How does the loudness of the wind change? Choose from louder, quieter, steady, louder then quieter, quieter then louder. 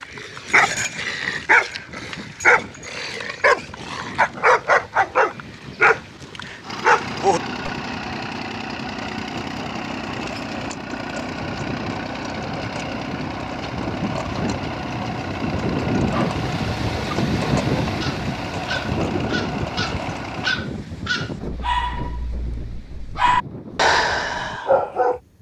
louder then quieter.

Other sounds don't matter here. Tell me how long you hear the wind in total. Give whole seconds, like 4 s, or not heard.
25 s.